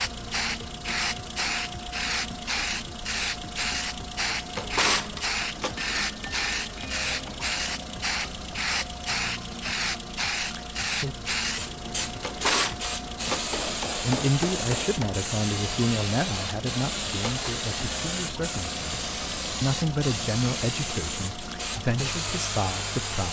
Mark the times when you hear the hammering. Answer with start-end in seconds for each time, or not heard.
5.8-7.5, 13.5-15.2.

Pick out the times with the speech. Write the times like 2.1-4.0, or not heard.
14.0-19.0, 19.6-23.2.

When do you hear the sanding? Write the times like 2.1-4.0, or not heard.
not heard.